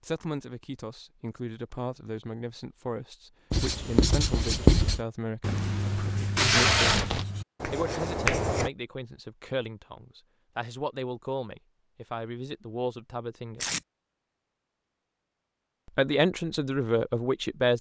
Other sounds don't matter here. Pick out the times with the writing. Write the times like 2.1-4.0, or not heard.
3.5-8.7.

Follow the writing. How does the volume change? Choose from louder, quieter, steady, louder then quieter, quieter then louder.
quieter then louder.